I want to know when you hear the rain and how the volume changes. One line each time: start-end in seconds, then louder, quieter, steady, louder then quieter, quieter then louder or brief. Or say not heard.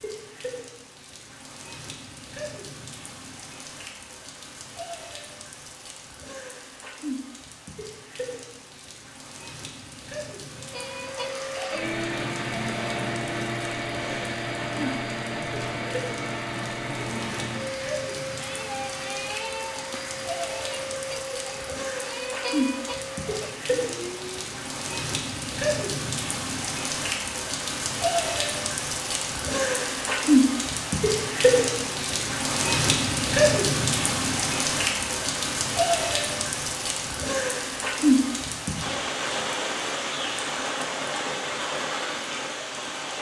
0.0-43.1 louder.